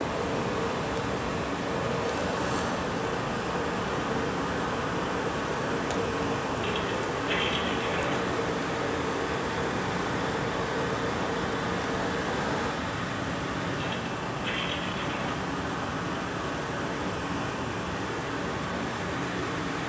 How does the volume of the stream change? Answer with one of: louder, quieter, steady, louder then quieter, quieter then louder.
steady.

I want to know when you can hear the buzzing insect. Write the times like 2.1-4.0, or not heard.
0.0-12.8.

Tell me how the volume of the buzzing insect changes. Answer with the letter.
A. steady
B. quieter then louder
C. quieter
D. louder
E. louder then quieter
A.